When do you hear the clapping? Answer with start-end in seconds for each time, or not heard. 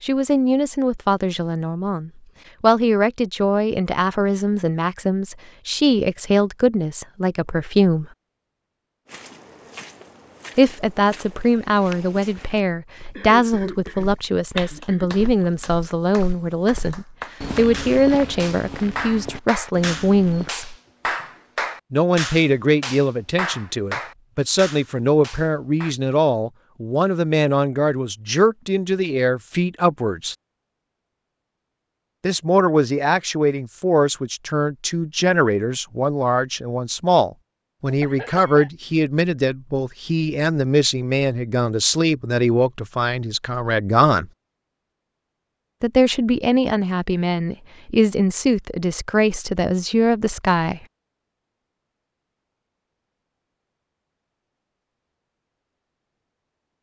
14.6-25.9.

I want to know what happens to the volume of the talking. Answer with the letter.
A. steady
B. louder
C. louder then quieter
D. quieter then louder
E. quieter
A.